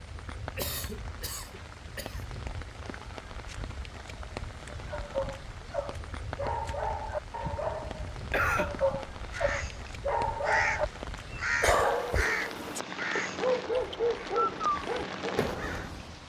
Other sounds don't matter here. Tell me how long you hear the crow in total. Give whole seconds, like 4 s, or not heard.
7 s.